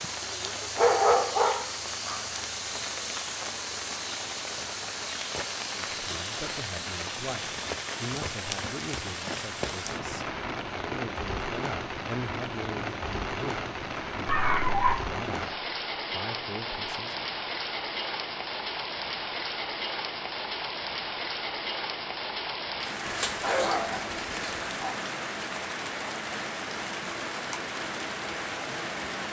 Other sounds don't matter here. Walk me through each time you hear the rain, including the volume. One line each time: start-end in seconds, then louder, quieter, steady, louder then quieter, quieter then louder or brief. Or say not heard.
0.0-29.2 steady.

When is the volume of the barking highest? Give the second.
1 s.